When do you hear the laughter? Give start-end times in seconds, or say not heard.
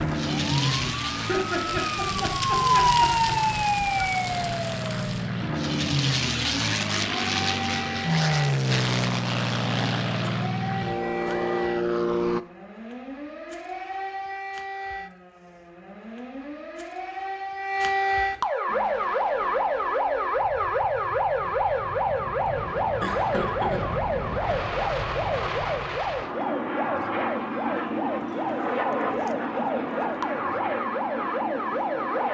1.1-3.4, 23.0-23.8.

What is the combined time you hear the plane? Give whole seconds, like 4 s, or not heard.
26 s.